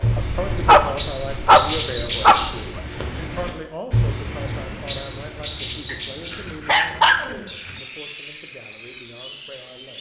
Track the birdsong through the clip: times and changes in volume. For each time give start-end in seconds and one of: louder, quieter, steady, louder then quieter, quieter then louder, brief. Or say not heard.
0.0-9.9 quieter.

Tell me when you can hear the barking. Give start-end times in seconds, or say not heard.
0.1-2.8, 5.9-7.3.